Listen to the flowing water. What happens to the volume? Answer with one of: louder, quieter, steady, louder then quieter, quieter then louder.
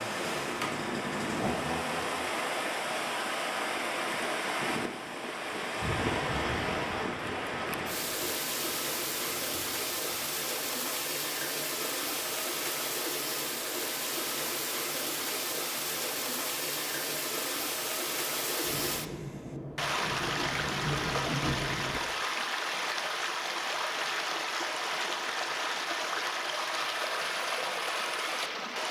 steady.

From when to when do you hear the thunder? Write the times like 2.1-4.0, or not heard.
5.7-10.3, 18.6-22.0.